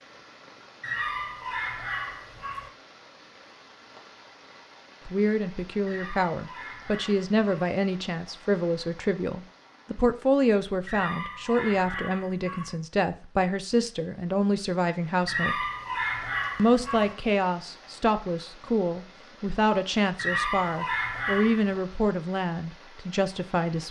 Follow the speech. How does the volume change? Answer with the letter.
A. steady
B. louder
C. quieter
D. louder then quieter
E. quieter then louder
A.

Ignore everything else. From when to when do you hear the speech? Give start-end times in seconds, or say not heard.
5.0-15.7, 16.6-23.8.